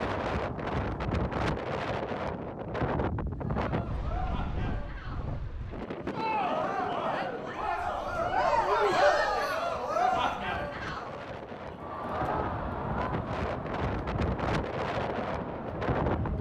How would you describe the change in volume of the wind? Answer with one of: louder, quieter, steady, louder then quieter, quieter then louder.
quieter then louder.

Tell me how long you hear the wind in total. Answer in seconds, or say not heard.
16 s.